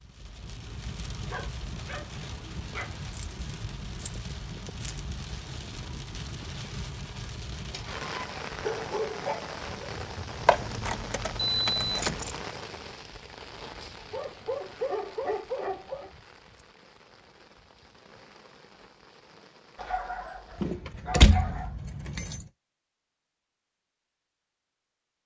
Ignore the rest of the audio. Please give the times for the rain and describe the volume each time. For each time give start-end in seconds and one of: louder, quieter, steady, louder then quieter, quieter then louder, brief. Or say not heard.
0.0-20.8 quieter.